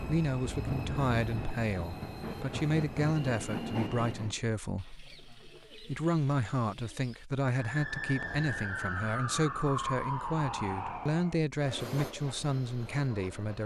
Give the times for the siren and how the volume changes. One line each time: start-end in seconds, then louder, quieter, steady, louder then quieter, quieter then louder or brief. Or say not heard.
7.4-11.4 steady.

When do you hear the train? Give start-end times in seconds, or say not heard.
0.0-4.3, 11.6-13.6.